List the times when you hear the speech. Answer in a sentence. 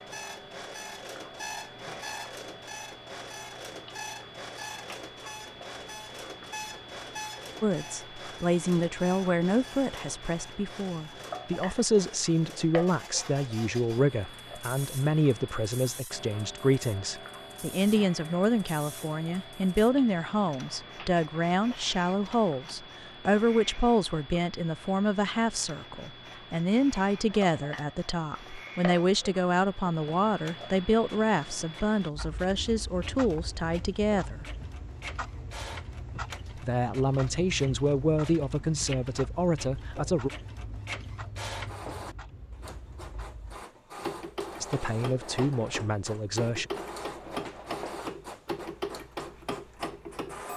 You can hear the speech from 7.6 to 34.5 s, from 36.5 to 40.3 s and from 44.6 to 46.6 s.